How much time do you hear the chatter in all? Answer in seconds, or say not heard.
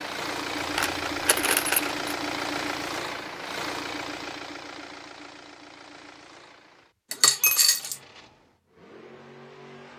not heard.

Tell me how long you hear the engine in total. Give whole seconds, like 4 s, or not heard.
10 s.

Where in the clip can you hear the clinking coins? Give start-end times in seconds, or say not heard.
0.6-1.9, 7.1-8.0.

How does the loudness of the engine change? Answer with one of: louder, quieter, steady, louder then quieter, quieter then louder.
quieter.